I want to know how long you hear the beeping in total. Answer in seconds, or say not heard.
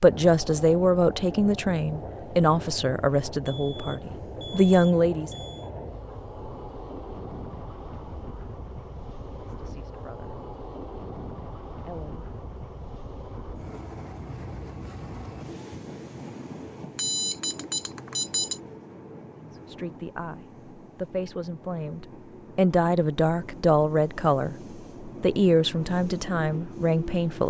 4 s.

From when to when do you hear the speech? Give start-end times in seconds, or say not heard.
0.0-5.3, 9.4-10.3, 11.8-12.3, 19.4-27.4.